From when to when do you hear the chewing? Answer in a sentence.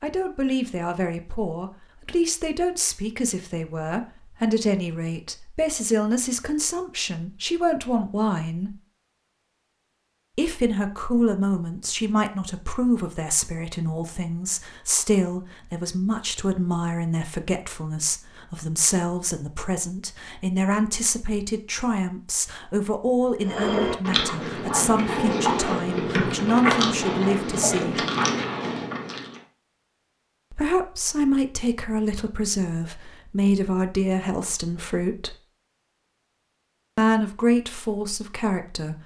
You can hear the chewing from 23.4 to 29.4 s.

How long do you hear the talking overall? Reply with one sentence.
You can hear the talking for 33 seconds altogether.